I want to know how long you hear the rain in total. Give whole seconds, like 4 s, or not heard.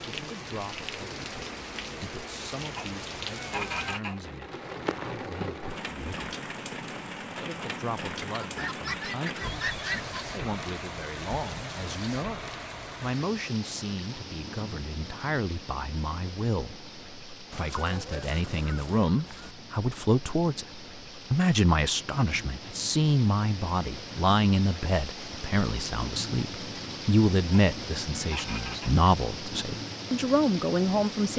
31 s.